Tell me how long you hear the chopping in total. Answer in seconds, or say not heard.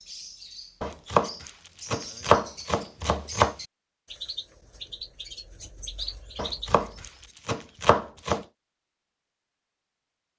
5 s.